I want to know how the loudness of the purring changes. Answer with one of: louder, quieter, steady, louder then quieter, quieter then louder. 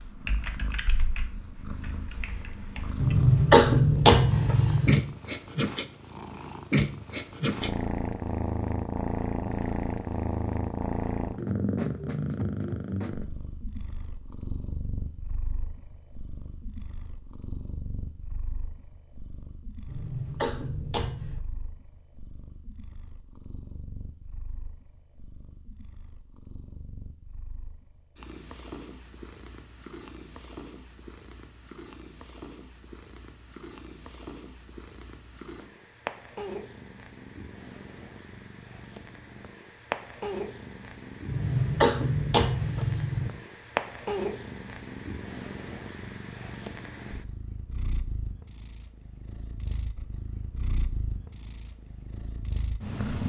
quieter then louder.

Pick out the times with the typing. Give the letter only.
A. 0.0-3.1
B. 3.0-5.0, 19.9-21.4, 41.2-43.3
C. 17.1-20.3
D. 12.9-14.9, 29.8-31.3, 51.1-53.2
A.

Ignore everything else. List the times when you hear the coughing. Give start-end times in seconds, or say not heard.
3.0-5.0, 19.9-21.4, 41.2-43.3.